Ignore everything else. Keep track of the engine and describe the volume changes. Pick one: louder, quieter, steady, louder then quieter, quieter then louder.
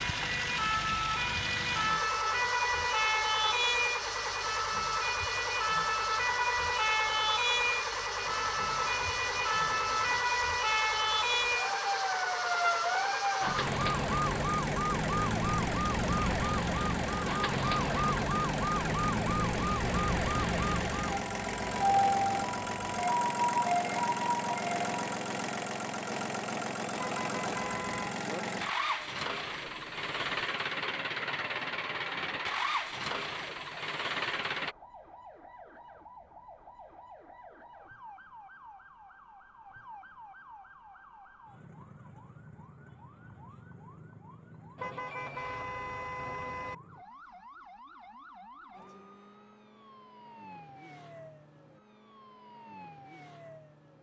steady.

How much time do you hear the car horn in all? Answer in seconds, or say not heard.
5 s.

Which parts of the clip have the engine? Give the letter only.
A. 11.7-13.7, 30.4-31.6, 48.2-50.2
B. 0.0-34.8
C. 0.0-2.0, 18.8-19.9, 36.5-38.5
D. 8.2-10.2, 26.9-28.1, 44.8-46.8
B.